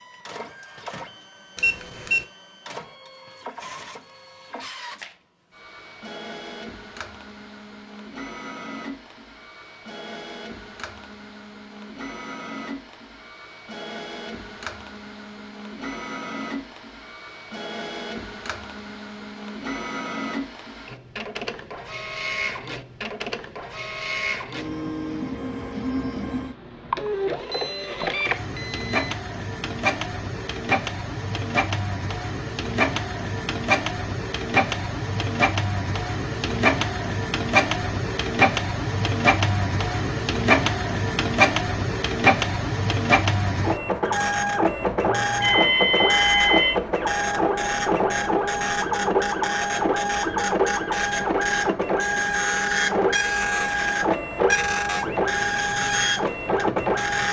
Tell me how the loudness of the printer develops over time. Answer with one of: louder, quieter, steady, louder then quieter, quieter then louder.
louder.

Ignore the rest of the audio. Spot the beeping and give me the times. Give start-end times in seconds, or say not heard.
1.6-2.2, 27.5-29.1, 45.4-46.8.